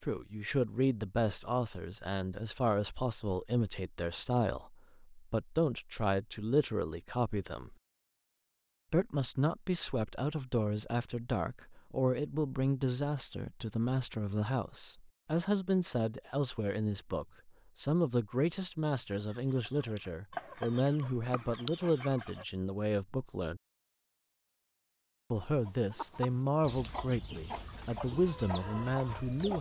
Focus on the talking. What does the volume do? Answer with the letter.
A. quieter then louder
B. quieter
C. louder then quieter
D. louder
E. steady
E.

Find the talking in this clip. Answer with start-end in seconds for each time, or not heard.
0.0-7.8, 8.9-23.6, 25.3-29.5.